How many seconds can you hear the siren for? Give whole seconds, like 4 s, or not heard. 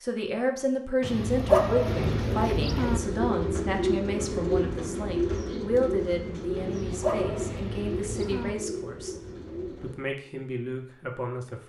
not heard.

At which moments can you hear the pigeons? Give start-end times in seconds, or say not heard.
1.9-9.9.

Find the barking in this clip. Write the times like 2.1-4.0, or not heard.
1.0-3.0, 6.5-8.6.